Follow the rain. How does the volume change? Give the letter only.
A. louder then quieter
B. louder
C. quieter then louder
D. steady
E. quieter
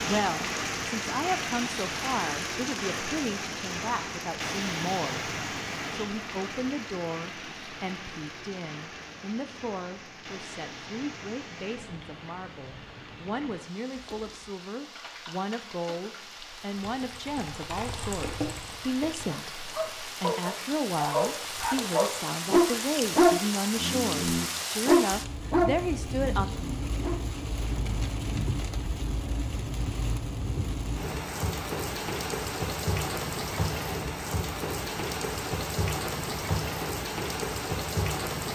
C.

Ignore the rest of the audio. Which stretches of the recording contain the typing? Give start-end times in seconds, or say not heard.
13.9-19.3.